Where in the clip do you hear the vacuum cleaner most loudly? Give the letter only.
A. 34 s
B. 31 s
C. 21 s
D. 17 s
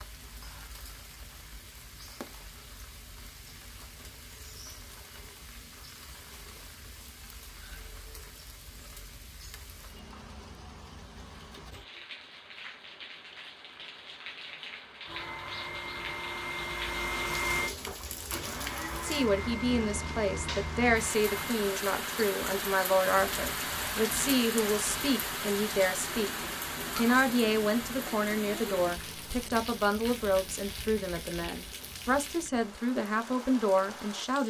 D.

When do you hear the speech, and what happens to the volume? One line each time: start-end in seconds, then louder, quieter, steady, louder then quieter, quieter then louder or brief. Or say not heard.
19.0-34.4 steady.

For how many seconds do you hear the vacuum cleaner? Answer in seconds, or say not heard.
7 s.